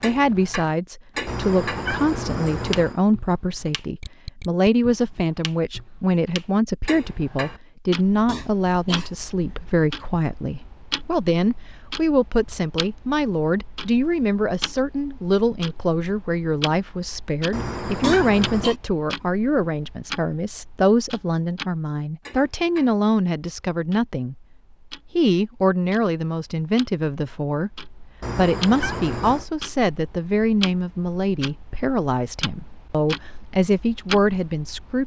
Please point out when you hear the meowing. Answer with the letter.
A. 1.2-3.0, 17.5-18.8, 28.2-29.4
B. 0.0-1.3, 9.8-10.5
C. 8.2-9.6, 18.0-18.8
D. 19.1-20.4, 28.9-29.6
A.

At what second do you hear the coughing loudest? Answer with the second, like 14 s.
18 s.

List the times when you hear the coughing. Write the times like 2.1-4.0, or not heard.
8.2-9.6, 18.0-18.8.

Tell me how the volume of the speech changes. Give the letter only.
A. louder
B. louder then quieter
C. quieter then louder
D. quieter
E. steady
E.